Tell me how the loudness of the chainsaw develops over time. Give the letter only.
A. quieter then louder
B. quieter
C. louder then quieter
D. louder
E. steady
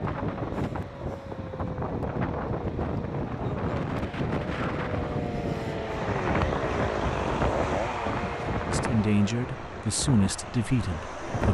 C.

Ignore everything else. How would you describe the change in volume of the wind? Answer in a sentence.
The volume of the wind goes down.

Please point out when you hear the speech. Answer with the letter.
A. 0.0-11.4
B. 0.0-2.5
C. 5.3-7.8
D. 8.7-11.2
D.